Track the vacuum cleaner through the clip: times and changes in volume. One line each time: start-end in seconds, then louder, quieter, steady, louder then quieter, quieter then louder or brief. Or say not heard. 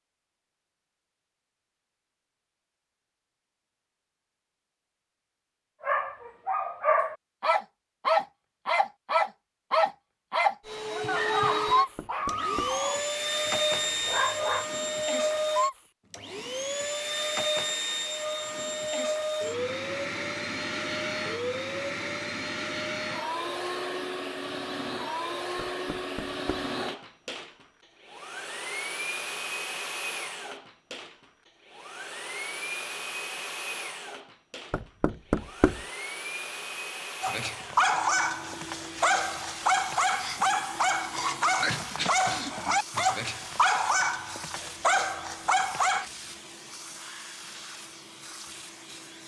10.7-49.2 quieter.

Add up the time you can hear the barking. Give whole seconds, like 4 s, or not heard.
18 s.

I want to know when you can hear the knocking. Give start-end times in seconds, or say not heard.
11.8-12.8, 25.6-26.7, 34.7-35.8.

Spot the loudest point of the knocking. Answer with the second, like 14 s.
35 s.